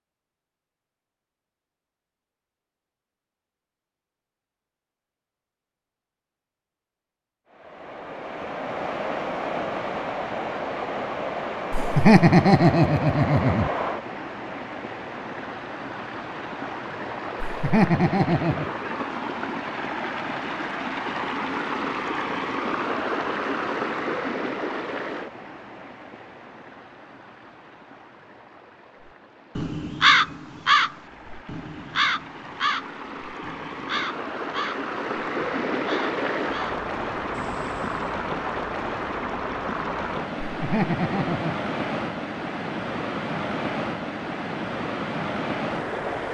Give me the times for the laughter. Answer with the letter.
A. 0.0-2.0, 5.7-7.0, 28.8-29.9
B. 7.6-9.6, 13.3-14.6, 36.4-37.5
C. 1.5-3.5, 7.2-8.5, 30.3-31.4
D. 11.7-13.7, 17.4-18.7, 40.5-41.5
D.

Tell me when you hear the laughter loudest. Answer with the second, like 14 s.
12 s.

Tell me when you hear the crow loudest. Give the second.
30 s.